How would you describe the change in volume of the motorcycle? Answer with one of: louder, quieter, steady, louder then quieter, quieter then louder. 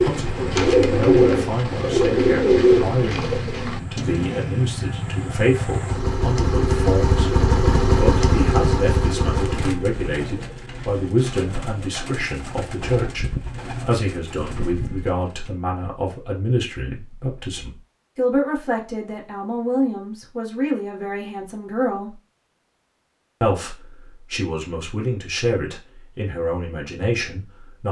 louder.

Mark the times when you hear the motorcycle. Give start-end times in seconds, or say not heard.
0.0-9.8.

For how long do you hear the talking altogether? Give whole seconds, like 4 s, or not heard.
26 s.